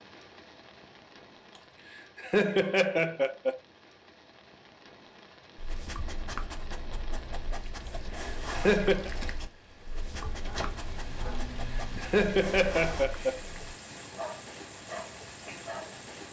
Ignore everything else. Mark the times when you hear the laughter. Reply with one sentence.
The laughter can be heard from 2.1 to 3.6 s, from 8.5 to 9.1 s and from 11.8 to 13.6 s.